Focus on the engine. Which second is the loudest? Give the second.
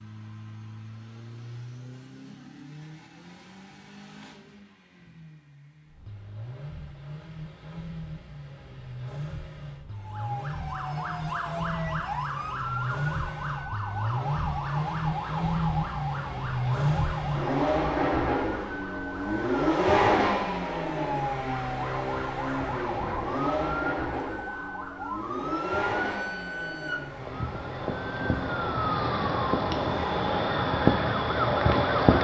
20 s.